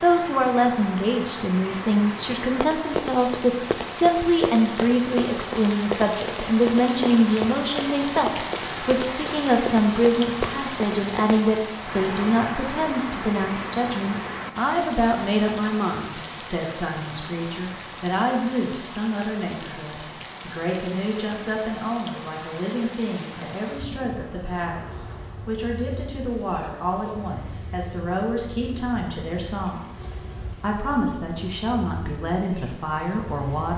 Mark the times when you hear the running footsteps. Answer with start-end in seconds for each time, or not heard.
2.6-11.4.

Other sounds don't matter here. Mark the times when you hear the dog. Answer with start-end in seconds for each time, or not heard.
not heard.